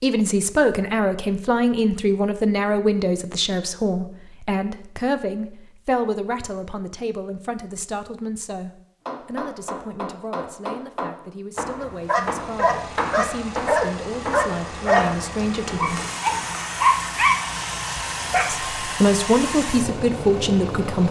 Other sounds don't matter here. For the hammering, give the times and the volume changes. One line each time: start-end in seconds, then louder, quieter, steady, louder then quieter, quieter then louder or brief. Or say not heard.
9.1-16.6 steady.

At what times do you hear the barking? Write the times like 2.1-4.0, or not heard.
12.1-18.5.